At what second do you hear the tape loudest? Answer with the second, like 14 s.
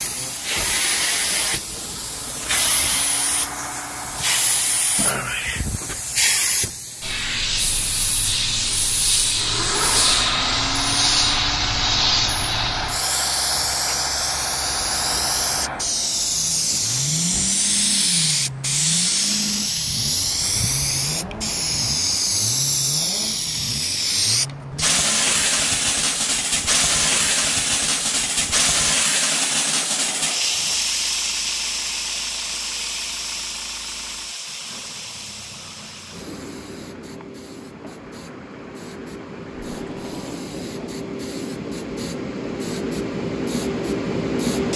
40 s.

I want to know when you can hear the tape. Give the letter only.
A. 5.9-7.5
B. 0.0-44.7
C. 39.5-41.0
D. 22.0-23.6
C.